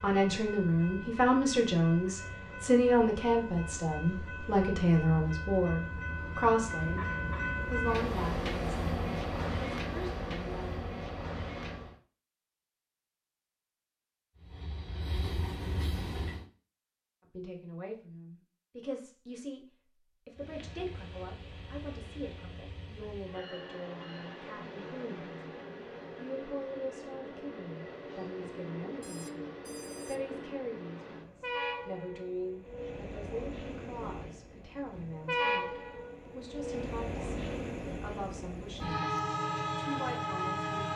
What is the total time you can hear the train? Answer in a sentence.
You can hear the train for 35 seconds altogether.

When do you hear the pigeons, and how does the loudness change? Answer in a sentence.
The pigeons can't be heard in this clip.